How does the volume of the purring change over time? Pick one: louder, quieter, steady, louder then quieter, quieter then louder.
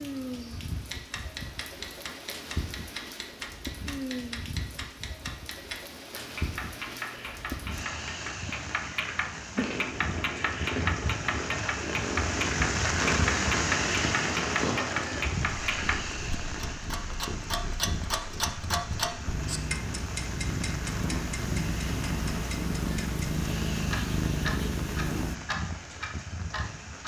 quieter then louder.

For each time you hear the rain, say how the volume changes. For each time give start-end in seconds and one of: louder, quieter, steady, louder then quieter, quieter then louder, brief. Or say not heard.
0.0-27.0 louder then quieter.